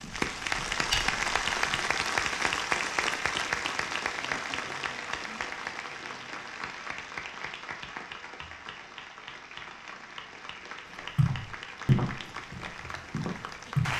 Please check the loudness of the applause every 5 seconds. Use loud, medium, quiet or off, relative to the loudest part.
loud, medium, medium.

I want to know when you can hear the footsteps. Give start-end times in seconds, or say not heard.
0.0-1.8, 11.2-13.9.